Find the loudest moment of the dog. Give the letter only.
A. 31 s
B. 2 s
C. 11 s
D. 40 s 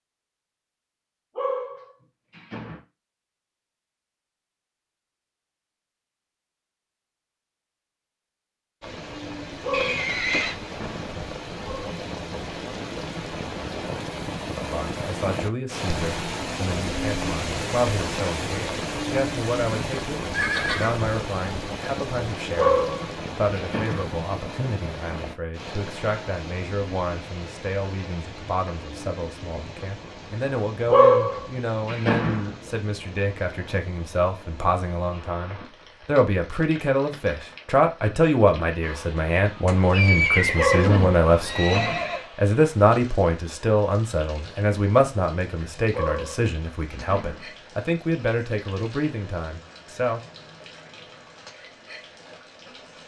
A.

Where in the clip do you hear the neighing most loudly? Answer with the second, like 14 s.
40 s.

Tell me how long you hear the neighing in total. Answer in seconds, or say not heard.
4 s.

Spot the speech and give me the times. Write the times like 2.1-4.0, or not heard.
14.6-50.2.